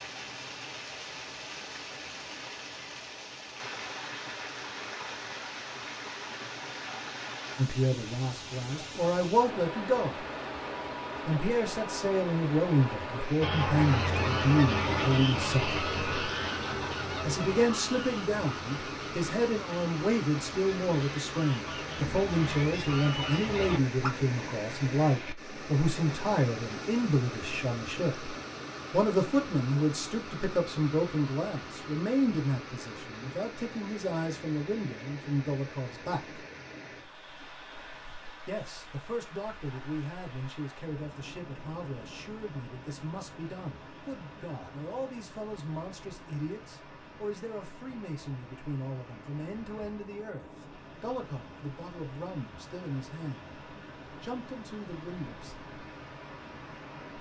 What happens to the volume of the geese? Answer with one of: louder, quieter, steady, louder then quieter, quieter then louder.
quieter then louder.